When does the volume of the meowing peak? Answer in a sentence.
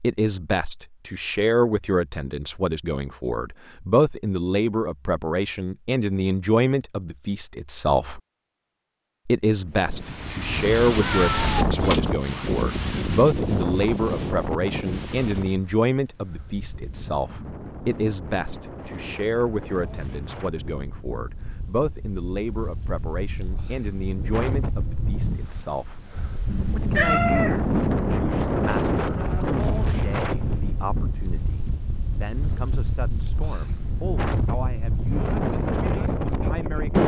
The loudest moment of the meowing is at 27 seconds.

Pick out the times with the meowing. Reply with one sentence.
The meowing can be heard from 11.0 to 12.1 s and from 26.4 to 28.2 s.